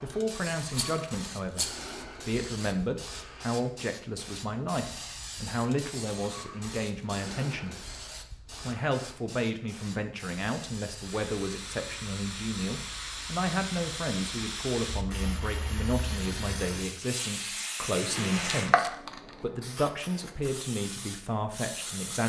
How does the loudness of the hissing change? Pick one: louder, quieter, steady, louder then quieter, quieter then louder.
louder.